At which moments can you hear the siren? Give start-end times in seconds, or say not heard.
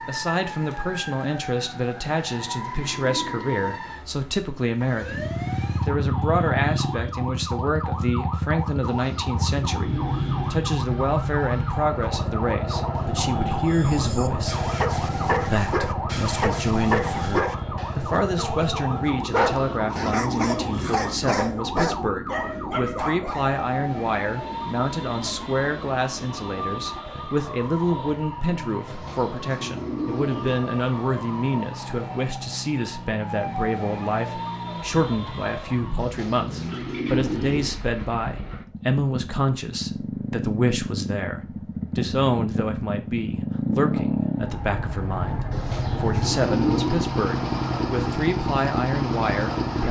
0.0-36.1.